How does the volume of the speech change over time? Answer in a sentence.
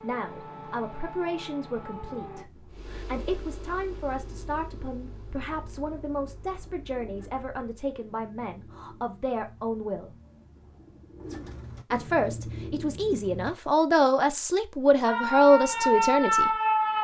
The loudness of the speech goes up.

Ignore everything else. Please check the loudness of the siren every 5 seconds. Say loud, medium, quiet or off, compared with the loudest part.
quiet, off, off, loud.